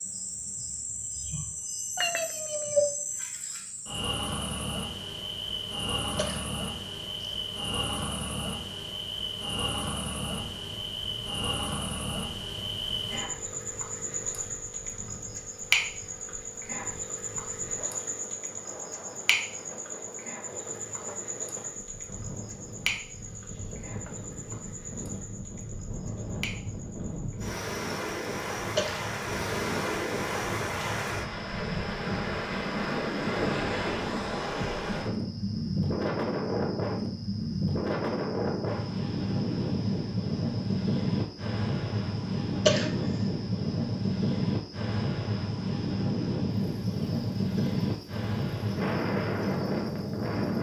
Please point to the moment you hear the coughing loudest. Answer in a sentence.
The loudest moment of the coughing is at 43 seconds.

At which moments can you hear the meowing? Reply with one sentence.
You can hear the meowing from 1.9 to 2.9 s.